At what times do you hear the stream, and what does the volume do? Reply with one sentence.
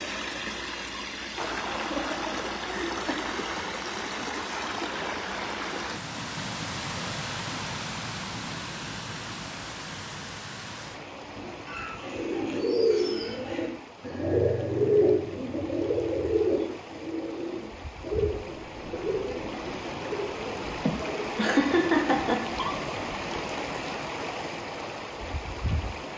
You can hear the stream from 0.0 to 26.1 s, getting quieter then louder.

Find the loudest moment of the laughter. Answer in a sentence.
The loudest moment of the laughter is at 22 seconds.